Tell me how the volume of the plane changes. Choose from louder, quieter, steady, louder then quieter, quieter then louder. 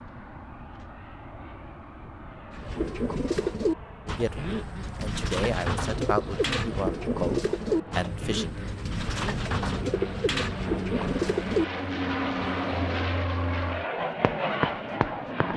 louder.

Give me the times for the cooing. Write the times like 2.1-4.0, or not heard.
2.5-11.7.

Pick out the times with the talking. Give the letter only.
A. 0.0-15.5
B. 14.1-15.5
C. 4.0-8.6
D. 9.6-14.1
C.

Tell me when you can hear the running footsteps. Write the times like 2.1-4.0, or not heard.
14.1-15.5.